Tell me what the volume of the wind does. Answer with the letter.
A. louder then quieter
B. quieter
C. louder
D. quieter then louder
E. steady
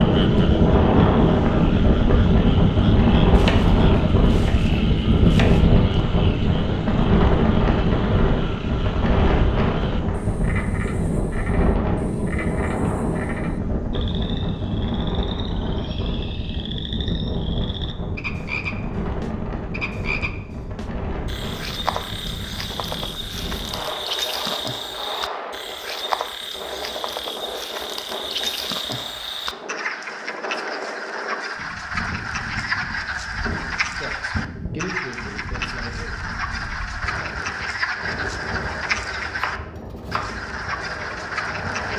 B.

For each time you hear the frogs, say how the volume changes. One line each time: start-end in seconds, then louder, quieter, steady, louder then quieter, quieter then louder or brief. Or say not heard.
0.0-41.9 louder.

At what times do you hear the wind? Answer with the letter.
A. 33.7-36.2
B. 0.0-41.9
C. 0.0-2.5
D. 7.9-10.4
B.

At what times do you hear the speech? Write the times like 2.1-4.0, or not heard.
33.7-36.2.